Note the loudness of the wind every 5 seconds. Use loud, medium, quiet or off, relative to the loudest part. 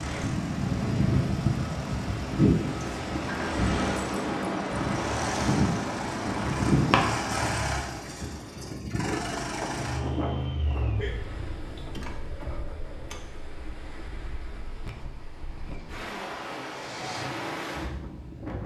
loud, loud, quiet, medium.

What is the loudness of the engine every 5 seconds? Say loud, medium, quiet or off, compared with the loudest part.
medium, loud, loud, medium.